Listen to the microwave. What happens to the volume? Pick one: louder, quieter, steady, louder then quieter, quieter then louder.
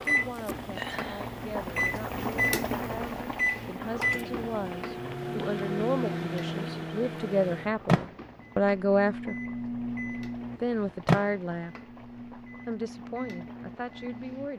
quieter.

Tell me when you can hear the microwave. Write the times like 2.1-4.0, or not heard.
0.0-14.5.